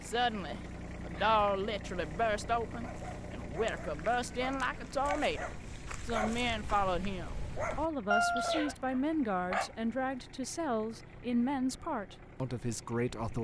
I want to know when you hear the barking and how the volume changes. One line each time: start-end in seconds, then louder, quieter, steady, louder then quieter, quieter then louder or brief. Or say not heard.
1.1-9.7 louder.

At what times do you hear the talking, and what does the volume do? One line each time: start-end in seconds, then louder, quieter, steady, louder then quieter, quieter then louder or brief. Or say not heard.
0.0-13.3 steady.